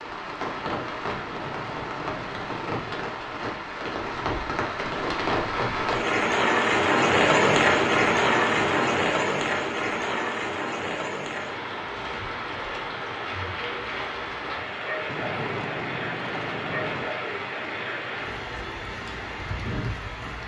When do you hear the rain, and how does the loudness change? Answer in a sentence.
You can hear the rain from 0.0 to 20.4 s, getting louder then quieter.